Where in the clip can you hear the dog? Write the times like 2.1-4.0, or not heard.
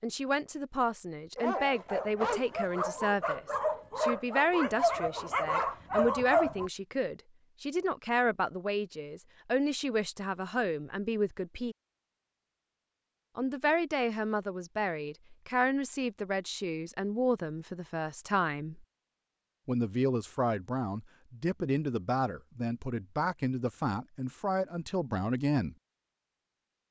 1.4-6.7.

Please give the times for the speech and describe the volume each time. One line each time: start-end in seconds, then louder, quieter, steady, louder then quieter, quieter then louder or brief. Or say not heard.
0.0-11.8 steady
13.3-18.9 steady
19.6-25.8 steady.